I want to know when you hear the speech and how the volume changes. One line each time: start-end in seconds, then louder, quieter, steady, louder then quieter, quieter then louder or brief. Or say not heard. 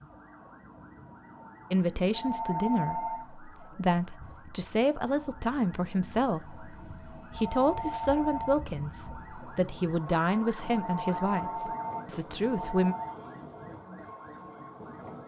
1.7-12.9 steady.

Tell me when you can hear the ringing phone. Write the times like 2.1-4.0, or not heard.
2.1-3.2, 7.3-8.6, 10.7-13.2.